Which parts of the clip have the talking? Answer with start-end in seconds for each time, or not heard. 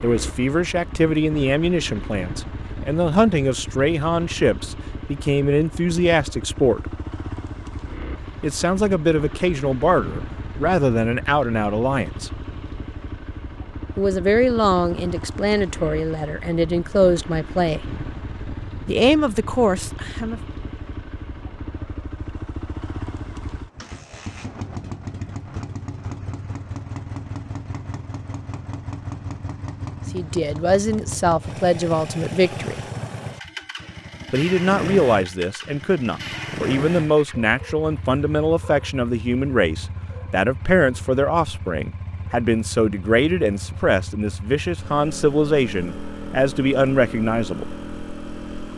0.0-6.8, 8.4-12.3, 13.9-17.8, 18.9-20.4, 30.1-32.8, 34.3-47.6.